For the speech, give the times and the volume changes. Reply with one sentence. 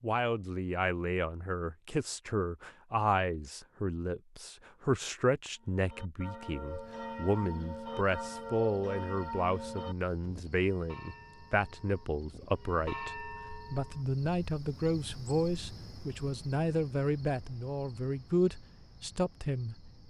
The speech can be heard from 0.0 to 20.0 s, at a steady volume.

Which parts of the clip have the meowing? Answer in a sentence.
The meowing can't be heard in this clip.